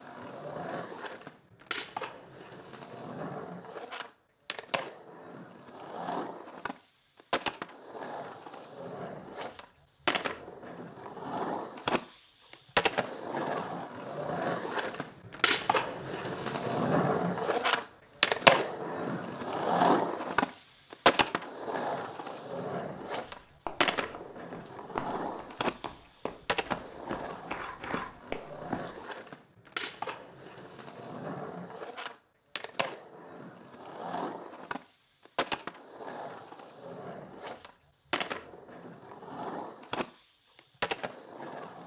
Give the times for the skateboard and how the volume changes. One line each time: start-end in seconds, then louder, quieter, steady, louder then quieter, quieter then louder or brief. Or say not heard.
0.0-41.8 louder then quieter.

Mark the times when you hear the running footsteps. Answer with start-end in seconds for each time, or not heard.
23.2-28.9.